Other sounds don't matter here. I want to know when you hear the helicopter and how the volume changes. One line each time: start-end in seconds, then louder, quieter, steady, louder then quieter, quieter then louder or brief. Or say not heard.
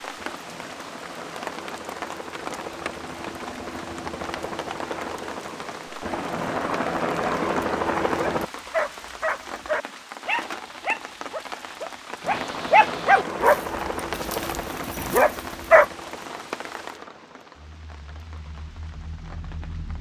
0.0-8.5 louder
12.2-19.9 quieter.